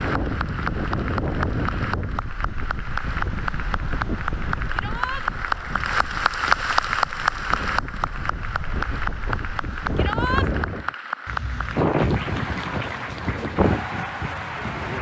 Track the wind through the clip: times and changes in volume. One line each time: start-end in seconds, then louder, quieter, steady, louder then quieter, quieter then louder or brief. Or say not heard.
0.0-14.9 quieter then louder.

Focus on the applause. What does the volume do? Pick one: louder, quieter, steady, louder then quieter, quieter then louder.
louder then quieter.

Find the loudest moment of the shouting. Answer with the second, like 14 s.
10 s.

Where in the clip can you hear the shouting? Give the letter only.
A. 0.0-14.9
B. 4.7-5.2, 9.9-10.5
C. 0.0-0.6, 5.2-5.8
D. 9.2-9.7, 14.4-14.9
B.